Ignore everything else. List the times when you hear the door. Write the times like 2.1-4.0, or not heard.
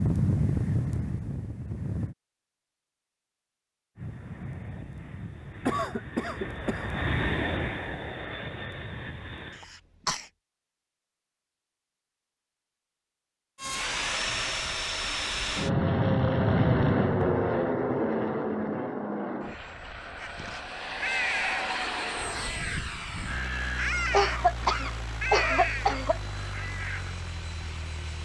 not heard.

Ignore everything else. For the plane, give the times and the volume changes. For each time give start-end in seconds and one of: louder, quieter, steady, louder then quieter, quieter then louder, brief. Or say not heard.
0.0-2.1 brief
4.0-9.6 louder then quieter
13.6-28.2 quieter.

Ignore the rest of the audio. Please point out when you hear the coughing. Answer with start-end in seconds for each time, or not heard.
5.7-6.8, 9.6-10.2, 24.1-26.2.